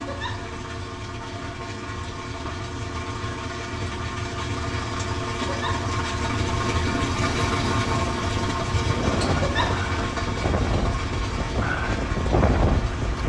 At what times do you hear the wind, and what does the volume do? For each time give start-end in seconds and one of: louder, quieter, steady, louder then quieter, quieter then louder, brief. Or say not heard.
6.6-13.2 louder.